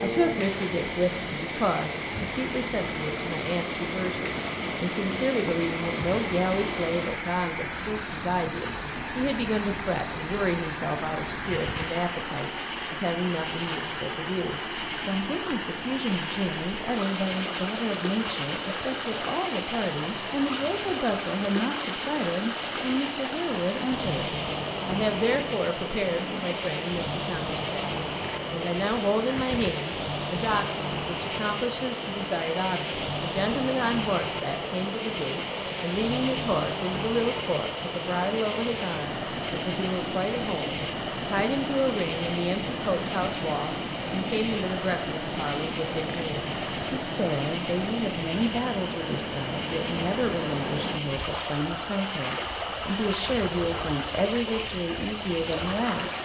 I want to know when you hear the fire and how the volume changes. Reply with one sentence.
You can't hear the fire here.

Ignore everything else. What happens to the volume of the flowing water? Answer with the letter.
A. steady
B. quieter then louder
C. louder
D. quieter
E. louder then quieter
A.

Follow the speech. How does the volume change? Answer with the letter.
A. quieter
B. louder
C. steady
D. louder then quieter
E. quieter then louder
C.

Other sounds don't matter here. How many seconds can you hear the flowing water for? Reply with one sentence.
You can hear the flowing water for 56 seconds altogether.